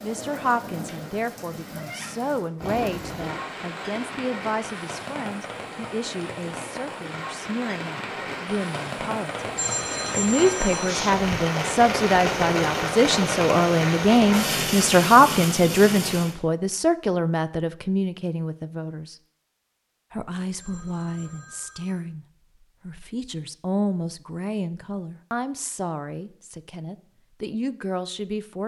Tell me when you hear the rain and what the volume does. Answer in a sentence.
The rain can be heard from 0.0 to 16.4 s, getting louder.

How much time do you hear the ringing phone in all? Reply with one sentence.
You can hear the ringing phone for 3 seconds altogether.